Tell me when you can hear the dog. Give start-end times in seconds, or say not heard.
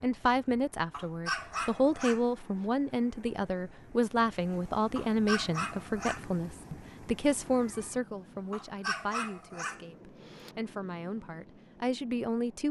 0.9-2.6, 5.0-6.2, 8.5-10.6.